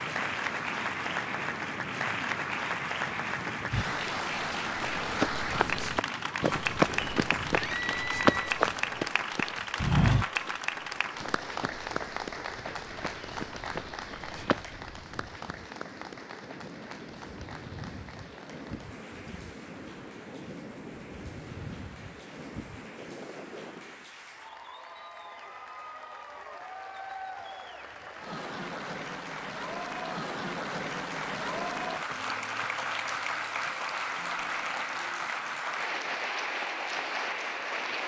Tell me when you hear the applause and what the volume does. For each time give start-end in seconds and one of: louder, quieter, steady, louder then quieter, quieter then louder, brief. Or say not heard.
0.0-38.0 quieter then louder.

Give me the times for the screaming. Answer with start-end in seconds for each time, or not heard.
7.5-8.6.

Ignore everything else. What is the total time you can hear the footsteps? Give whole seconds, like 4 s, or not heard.
11 s.